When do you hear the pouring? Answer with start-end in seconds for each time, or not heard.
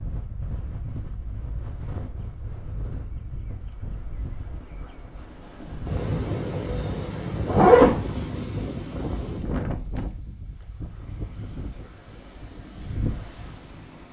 not heard.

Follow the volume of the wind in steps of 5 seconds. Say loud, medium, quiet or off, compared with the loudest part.
medium, loud, medium.